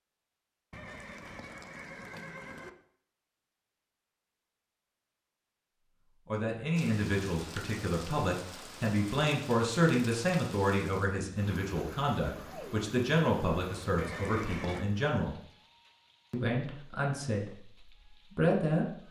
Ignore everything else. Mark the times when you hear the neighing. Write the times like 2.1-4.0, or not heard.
0.7-2.7, 13.9-14.8.